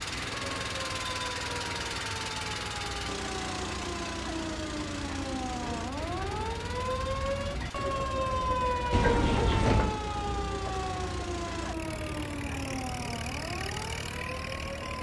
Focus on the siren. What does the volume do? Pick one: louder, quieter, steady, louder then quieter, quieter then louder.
louder then quieter.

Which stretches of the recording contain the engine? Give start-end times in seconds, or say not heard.
0.0-14.9.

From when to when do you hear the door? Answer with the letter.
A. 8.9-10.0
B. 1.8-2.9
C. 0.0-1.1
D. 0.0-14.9
A.